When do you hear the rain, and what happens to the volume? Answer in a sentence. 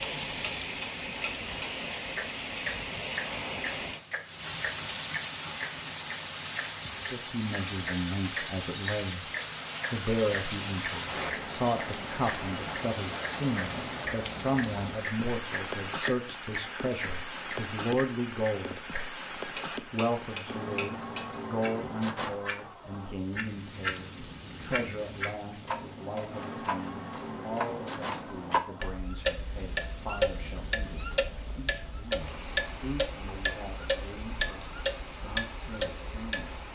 The rain can be heard from 0.0 to 36.7 s, getting quieter.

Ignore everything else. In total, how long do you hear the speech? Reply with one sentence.
You can hear the speech for 28 seconds altogether.